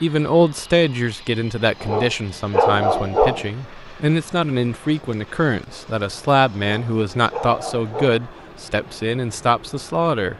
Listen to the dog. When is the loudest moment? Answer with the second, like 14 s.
3 s.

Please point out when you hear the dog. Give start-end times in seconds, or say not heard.
1.8-3.5, 6.6-8.2.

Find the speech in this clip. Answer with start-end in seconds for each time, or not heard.
0.0-10.3.